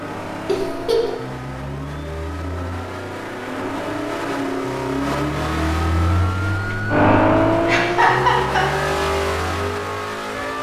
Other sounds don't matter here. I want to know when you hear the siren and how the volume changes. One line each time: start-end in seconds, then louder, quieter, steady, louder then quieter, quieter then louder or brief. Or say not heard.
0.0-10.5 louder then quieter.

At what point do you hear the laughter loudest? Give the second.
8 s.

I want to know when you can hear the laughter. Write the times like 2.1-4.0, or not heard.
0.5-1.1, 7.7-8.7.